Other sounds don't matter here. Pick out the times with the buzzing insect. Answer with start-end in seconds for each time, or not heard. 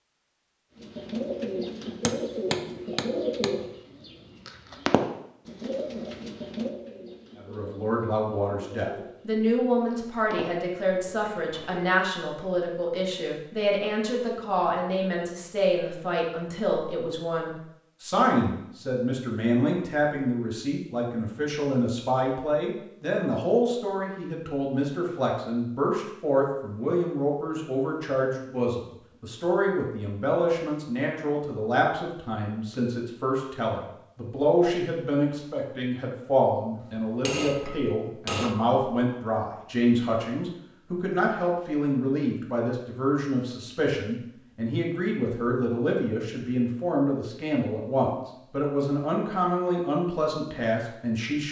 not heard.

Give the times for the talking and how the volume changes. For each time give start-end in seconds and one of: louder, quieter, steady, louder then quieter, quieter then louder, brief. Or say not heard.
7.3-51.4 steady.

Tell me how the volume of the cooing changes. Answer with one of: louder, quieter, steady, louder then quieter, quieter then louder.
quieter.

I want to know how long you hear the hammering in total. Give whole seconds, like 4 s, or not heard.
3 s.